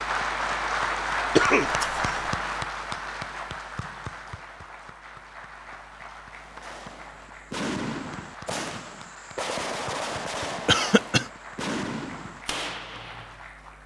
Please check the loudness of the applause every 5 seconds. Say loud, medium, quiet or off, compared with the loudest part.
loud, quiet, quiet.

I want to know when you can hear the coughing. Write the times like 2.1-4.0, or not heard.
1.4-2.3, 10.7-11.2.